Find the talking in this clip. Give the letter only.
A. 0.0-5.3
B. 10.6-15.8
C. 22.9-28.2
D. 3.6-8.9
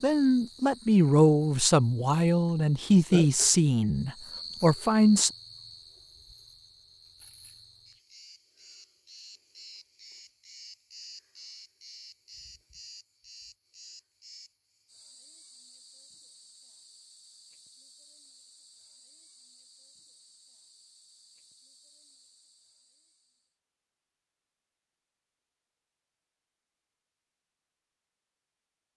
A.